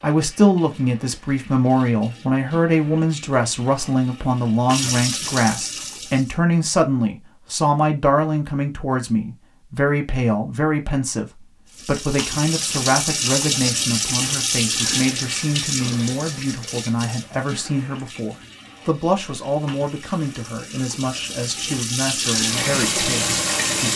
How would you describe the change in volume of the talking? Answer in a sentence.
The volume of the talking goes down.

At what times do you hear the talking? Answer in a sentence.
You can hear the talking from 0.0 to 23.9 s.